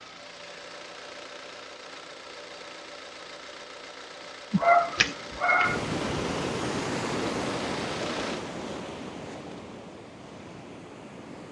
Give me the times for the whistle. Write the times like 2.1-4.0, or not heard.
not heard.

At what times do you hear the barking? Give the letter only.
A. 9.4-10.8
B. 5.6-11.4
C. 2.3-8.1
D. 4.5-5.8
D.